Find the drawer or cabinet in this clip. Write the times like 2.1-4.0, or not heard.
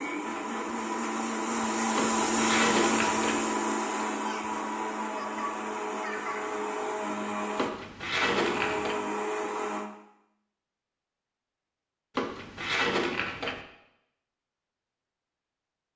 1.9-3.4, 7.5-8.9, 12.2-13.6.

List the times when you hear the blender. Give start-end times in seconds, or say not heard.
0.0-9.9.